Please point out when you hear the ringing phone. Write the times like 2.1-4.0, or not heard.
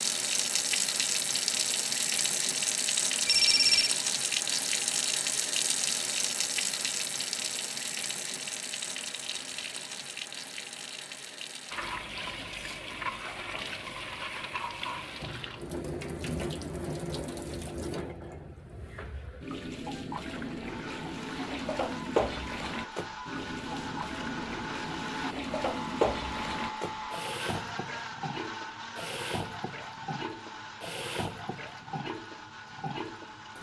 3.2-4.0.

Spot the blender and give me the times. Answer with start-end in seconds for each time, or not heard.
20.6-33.5.